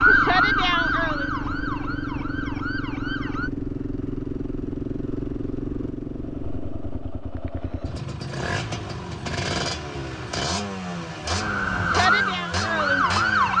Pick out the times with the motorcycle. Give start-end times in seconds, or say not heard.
0.0-13.5.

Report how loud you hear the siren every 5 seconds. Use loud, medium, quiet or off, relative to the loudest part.
loud, off, loud.